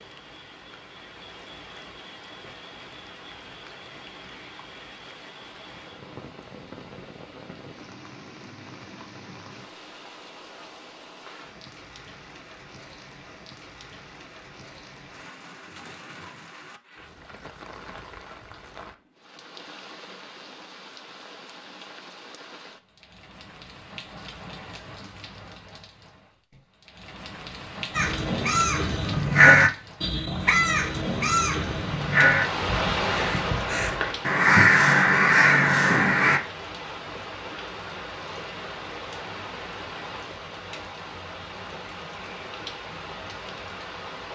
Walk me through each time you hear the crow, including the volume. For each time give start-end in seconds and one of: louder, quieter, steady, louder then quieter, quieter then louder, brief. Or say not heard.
27.9-36.4 quieter then louder.